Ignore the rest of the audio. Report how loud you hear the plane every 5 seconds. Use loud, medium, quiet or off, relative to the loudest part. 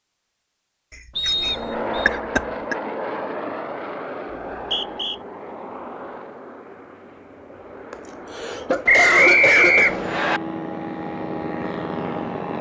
loud, medium, loud.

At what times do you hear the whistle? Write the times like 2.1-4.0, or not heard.
1.1-2.1, 4.3-5.2, 8.8-10.4.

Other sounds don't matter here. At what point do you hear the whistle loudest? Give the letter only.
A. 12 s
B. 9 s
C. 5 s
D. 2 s
B.